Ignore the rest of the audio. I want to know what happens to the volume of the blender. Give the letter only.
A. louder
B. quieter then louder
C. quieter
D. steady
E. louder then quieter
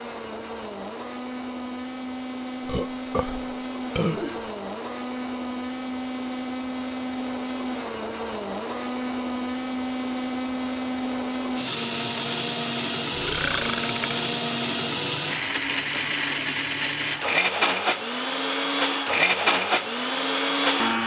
A.